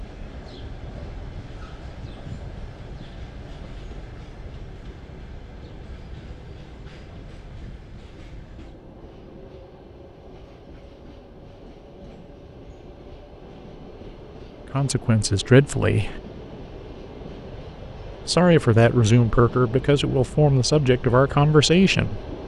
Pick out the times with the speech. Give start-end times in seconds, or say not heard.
14.7-16.2, 18.2-22.2.